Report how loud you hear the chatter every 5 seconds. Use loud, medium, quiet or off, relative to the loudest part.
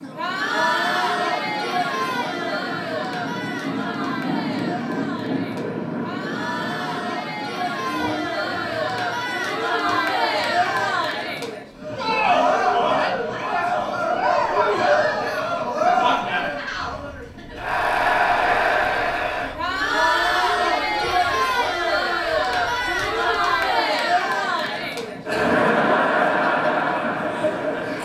medium, medium, loud, loud, loud, loud.